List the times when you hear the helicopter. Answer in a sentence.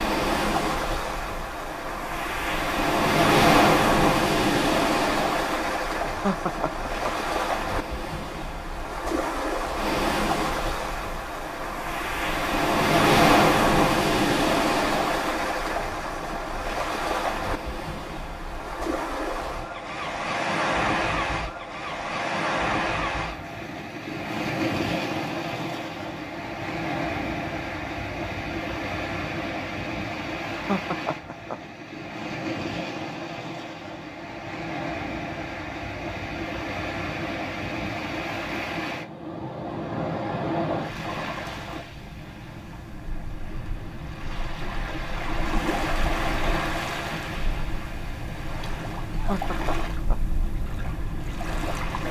The helicopter can't be heard in this clip.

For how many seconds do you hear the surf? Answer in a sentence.
The surf can be heard for 52 seconds in total.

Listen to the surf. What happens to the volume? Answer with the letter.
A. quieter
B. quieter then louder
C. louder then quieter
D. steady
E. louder
A.